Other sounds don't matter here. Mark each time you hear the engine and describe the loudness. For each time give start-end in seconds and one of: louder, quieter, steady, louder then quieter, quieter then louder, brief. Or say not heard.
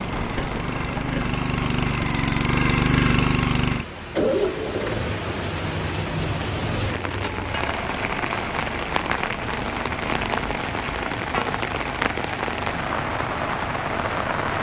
0.0-14.5 quieter.